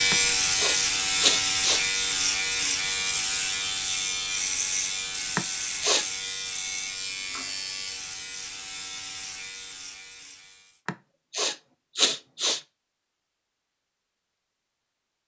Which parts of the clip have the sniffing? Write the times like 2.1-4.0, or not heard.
0.1-1.9, 5.3-6.0, 10.8-12.6.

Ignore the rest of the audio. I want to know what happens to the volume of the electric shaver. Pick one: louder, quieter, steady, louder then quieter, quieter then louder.
quieter.